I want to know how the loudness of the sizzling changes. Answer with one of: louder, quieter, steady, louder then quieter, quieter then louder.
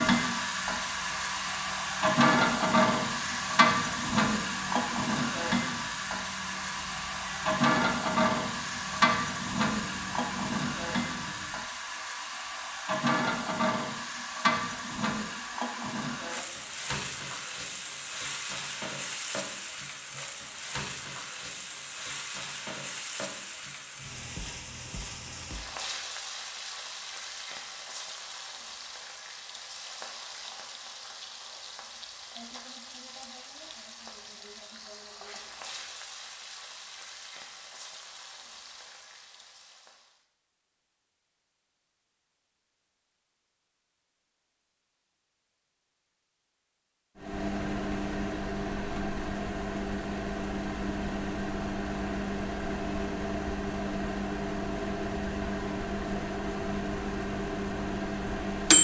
quieter.